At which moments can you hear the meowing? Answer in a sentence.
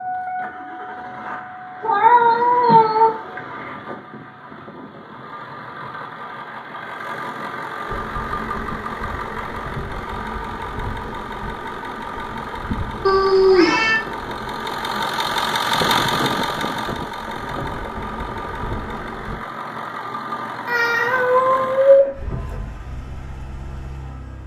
You can hear the meowing from 1.8 to 3.4 s, from 13.1 to 13.9 s and from 20.6 to 22.1 s.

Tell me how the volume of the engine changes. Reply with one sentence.
The loudness of the engine goes up, then down.